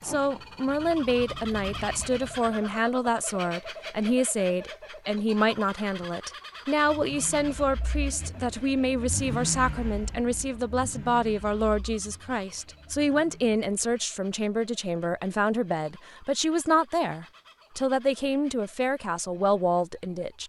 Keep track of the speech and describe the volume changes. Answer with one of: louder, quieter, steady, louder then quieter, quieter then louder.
steady.